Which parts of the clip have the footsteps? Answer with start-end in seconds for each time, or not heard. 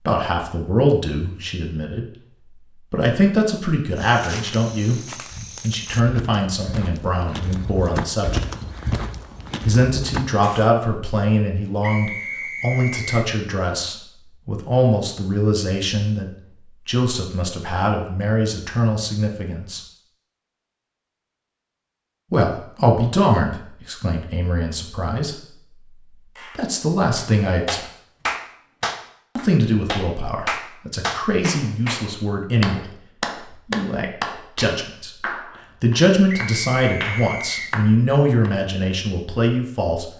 4.0-10.7.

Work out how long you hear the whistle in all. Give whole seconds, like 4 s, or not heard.
3 s.